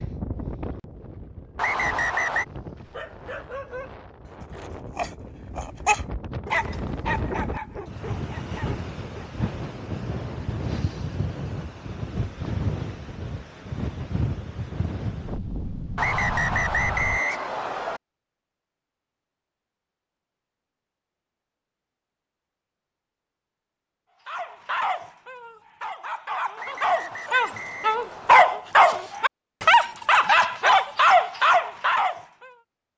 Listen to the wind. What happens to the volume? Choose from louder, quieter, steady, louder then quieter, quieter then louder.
louder.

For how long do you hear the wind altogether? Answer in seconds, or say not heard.
17 s.